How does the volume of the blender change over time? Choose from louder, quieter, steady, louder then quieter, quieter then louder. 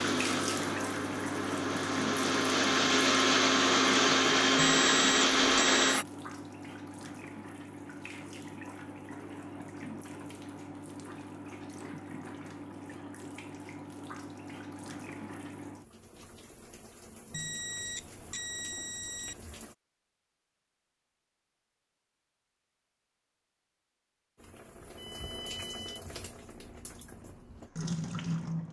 louder.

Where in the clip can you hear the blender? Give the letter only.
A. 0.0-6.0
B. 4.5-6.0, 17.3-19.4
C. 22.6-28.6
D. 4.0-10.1
A.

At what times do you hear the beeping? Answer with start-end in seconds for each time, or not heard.
4.5-6.0, 17.3-19.4.